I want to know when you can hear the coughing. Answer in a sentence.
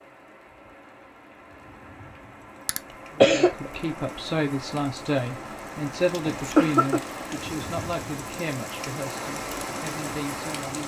You can hear the coughing from 2.6 to 3.7 s and from 6.1 to 7.0 s.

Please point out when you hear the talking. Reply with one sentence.
You can hear the talking from 3.1 to 10.8 s.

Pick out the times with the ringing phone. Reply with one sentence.
The ringing phone can't be heard in this clip.